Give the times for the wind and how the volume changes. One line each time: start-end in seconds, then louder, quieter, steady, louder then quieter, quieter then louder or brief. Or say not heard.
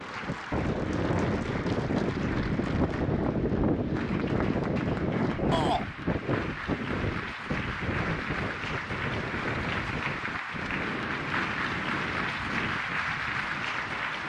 0.0-14.2 quieter.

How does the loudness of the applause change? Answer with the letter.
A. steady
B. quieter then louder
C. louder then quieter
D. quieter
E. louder
E.